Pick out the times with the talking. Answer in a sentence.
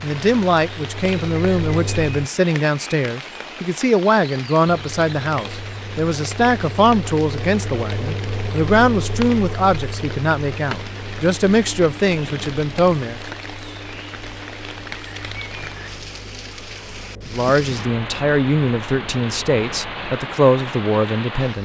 You can hear the talking from 0.0 to 13.2 s and from 17.3 to 21.6 s.